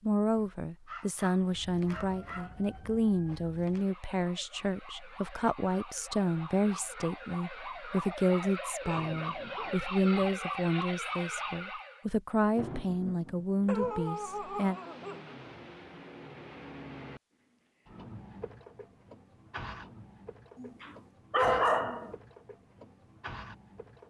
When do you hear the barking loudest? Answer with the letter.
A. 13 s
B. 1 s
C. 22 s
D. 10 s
C.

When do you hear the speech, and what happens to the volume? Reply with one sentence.
The speech can be heard from 0.0 to 14.8 s, at a steady volume.